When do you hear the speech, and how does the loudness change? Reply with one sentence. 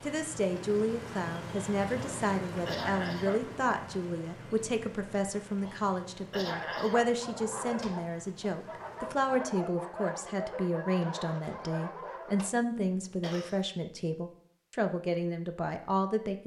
The speech can be heard from 0.0 to 16.4 s, at a steady volume.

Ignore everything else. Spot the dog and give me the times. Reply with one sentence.
You can hear the dog from 6.4 to 12.5 s.